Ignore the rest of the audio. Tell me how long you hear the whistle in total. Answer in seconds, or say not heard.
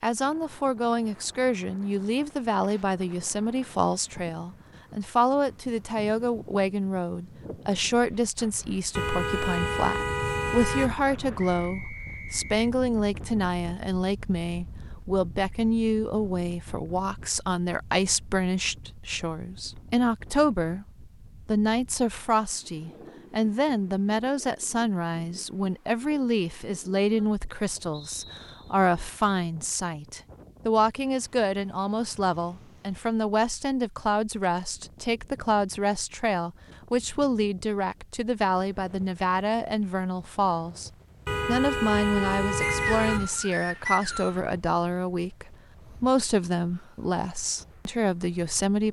4 s.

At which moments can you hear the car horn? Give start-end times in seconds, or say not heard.
8.9-10.9, 41.2-43.3.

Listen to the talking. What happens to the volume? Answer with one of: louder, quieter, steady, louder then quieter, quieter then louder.
steady.